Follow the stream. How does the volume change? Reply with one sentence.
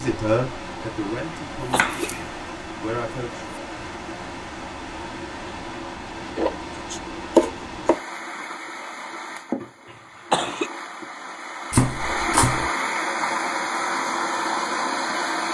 The volume of the stream goes up.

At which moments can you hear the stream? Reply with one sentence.
The stream can be heard from 0.0 to 15.4 s.